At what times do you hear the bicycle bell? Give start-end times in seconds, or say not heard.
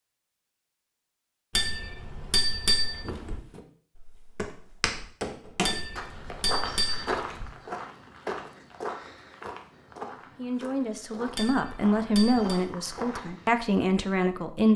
1.6-3.4, 5.7-7.5, 11.3-12.6.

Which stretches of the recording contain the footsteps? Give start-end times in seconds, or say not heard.
3.0-13.6.